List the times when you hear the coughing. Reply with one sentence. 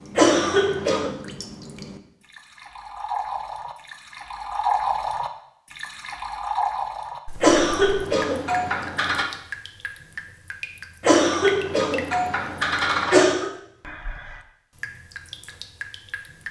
The coughing can be heard from 0.1 to 1.1 s, from 7.4 to 9.2 s and from 11.0 to 13.5 s.